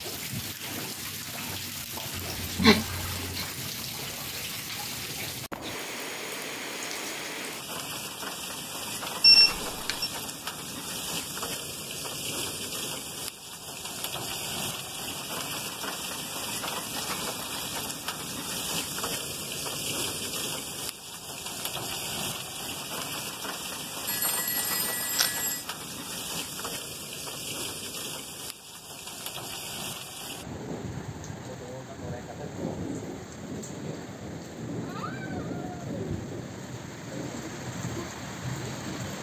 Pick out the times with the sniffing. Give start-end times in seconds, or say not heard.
2.1-3.5.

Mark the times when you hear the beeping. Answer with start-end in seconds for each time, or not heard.
9.2-10.1, 24.1-25.6.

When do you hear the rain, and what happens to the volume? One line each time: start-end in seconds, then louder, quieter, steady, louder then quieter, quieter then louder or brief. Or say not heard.
0.0-39.1 steady.